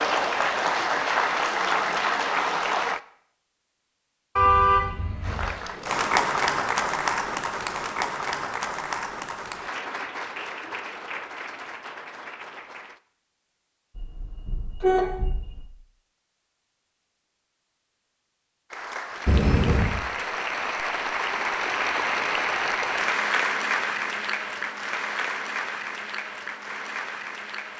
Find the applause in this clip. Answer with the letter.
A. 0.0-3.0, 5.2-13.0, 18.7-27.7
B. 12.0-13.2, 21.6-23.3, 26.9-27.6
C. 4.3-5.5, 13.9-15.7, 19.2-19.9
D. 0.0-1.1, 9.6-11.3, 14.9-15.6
A.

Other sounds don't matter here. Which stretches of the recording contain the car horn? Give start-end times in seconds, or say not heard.
4.3-5.5, 13.9-15.7, 19.2-19.9.